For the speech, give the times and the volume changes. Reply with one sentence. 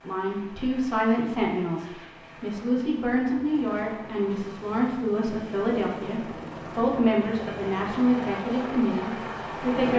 You can hear the speech from 0.1 to 9.9 s, at a steady volume.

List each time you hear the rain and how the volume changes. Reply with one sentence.
You can't hear the rain here.